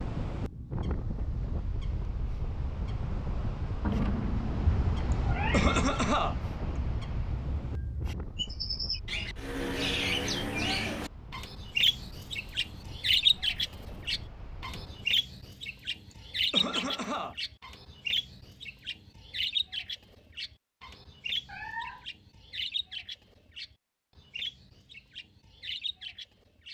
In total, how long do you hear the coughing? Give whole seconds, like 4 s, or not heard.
3 s.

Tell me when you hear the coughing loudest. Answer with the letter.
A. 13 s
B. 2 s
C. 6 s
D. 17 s
C.